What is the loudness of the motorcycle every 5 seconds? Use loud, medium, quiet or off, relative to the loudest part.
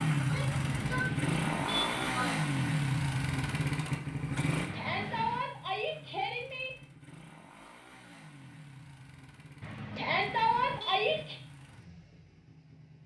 loud, quiet, quiet.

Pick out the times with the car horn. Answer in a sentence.
You can hear the car horn from 0.5 to 2.1 s, from 4.7 to 5.5 s and from 9.6 to 11.2 s.